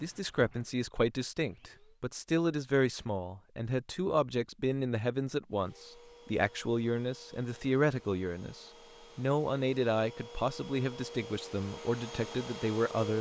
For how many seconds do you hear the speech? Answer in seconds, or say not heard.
13 s.